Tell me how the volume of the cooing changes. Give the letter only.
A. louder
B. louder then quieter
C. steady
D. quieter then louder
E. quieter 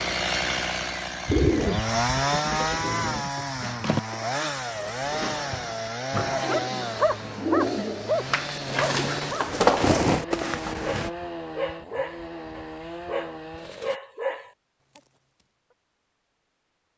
A.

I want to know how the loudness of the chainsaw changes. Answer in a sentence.
The loudness of the chainsaw goes down.